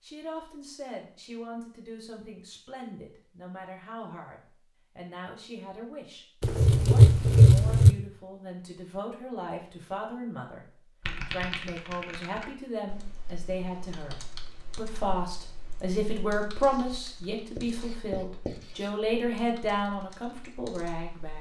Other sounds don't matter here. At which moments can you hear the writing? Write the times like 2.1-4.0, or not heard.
6.4-8.0, 16.6-19.1.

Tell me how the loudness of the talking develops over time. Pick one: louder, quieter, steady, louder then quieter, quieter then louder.
louder.